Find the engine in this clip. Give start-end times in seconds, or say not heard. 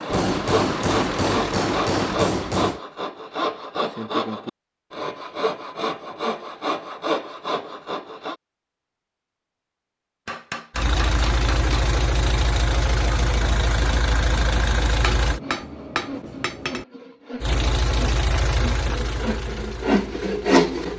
0.0-2.2, 10.7-15.4, 17.4-20.9.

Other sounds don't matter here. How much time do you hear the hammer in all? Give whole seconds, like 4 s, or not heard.
6 s.